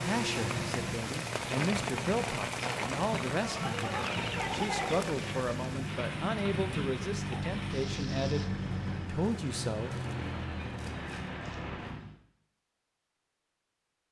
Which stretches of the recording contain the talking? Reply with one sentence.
You can hear the talking from 0.0 to 9.9 s.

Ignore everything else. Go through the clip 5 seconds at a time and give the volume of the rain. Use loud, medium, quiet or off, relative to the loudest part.
loud, medium, off.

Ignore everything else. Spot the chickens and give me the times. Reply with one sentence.
You can hear the chickens from 3.4 to 5.5 s.